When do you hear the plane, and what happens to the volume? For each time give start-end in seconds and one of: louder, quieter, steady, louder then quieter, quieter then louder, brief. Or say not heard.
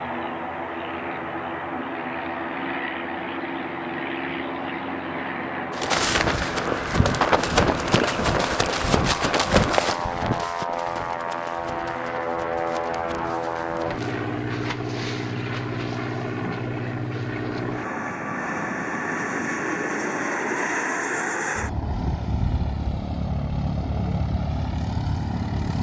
0.0-25.7 steady.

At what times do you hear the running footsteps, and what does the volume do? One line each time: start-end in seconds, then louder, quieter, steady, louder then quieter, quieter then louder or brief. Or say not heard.
5.7-14.2 quieter.